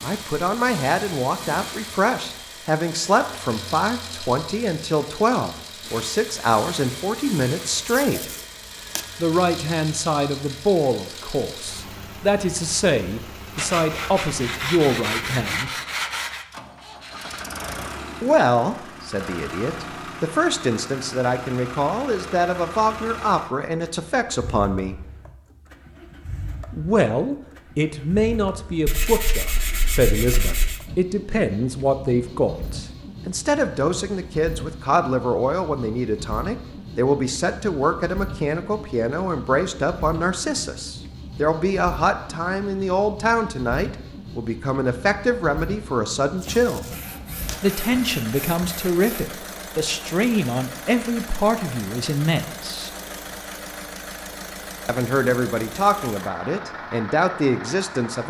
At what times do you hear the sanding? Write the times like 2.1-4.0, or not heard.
13.6-16.4, 28.9-30.9, 46.5-49.3.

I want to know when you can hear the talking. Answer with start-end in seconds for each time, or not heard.
0.0-8.3, 9.2-15.8, 18.2-24.9, 26.7-47.0, 47.6-52.9, 54.9-58.2.